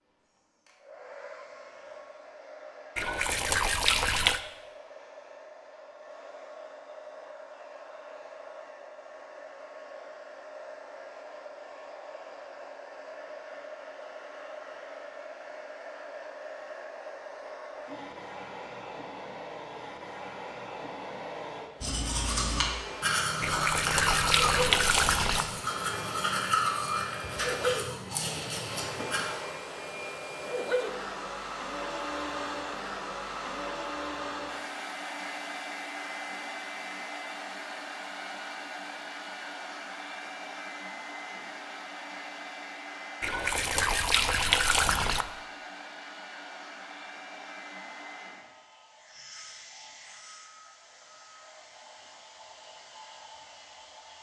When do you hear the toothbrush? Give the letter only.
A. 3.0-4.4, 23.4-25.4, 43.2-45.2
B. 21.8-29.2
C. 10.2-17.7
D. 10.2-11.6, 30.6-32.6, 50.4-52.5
B.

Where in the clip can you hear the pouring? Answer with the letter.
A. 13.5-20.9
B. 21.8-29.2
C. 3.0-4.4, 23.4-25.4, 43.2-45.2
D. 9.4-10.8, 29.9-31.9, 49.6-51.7
C.